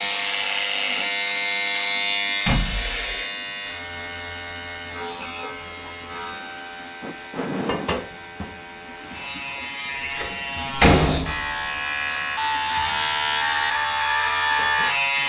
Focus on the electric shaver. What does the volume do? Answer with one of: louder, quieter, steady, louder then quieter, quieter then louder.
quieter then louder.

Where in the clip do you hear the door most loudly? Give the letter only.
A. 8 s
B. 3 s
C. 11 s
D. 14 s
C.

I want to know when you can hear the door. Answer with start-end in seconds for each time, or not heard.
2.5-3.1, 10.0-11.6.